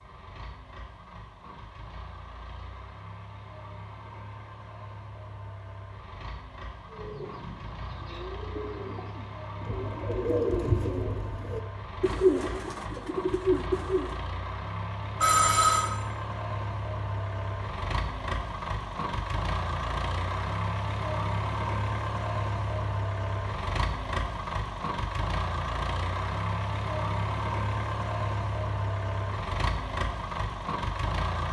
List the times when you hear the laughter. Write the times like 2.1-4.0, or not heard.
not heard.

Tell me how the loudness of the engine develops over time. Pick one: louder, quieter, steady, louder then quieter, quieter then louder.
louder.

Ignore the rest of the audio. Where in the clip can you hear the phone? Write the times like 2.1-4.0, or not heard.
15.2-15.9.